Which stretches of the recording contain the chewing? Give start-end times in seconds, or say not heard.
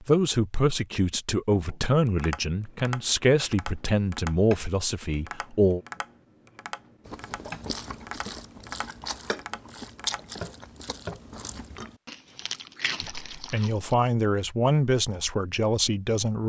7.0-13.9.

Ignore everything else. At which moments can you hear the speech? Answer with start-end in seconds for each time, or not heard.
0.0-5.8, 13.0-16.4.